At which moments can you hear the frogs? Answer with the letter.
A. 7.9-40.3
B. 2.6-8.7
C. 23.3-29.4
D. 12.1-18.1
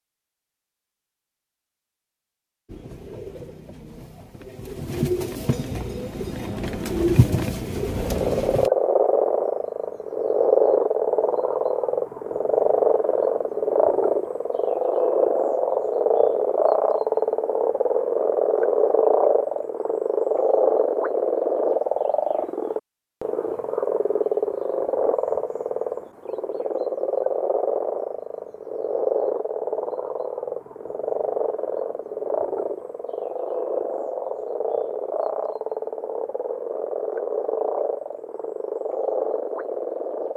A.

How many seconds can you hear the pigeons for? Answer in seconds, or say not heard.
6 s.